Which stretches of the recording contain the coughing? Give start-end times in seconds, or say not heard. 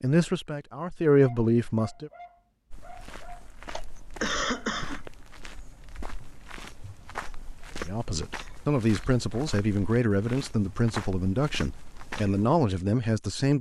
3.7-5.1.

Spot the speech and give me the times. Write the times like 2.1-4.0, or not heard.
0.0-2.1, 7.8-13.5.